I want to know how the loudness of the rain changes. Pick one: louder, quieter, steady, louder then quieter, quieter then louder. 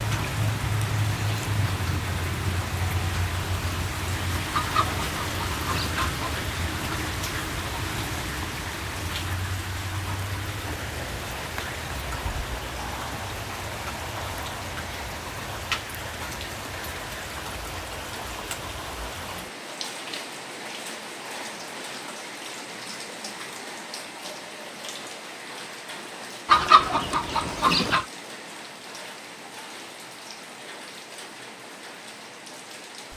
quieter.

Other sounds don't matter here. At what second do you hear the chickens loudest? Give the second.
27 s.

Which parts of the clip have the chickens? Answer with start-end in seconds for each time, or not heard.
4.5-6.5, 26.4-28.1.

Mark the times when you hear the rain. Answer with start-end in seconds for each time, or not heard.
0.0-33.1.